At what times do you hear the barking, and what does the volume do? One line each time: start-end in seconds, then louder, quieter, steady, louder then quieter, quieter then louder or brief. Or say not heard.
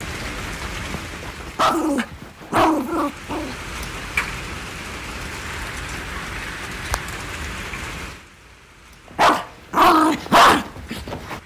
0.0-4.0 louder then quieter
9.2-11.4 brief.